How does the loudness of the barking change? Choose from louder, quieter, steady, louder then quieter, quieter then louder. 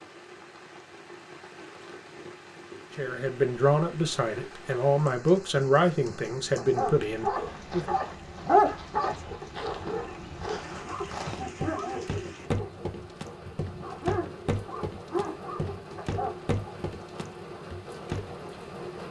quieter.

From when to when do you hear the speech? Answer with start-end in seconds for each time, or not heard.
3.0-8.0.